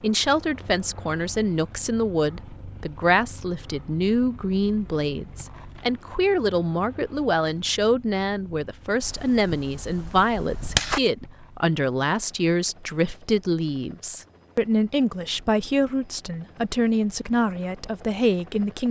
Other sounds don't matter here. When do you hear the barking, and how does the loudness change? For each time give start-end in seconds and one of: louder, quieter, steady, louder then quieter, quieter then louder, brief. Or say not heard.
not heard.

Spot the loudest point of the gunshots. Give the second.
11 s.